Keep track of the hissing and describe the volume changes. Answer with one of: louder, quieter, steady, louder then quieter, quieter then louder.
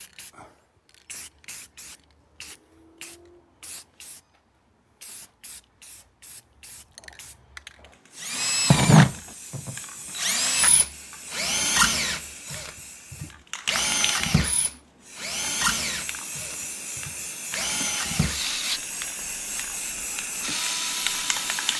louder.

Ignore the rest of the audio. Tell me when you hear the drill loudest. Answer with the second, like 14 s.
9 s.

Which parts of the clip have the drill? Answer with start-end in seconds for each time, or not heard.
8.2-18.8, 19.9-21.7.